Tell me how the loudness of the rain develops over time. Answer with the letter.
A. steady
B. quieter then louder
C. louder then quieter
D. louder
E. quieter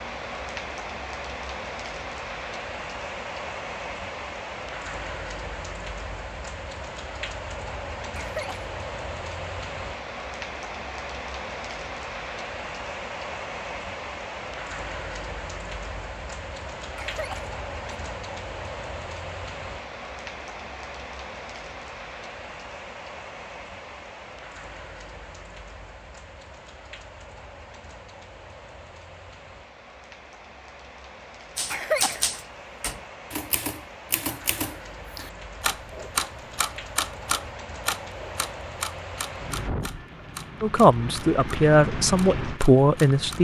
B.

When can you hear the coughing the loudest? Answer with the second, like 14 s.
32 s.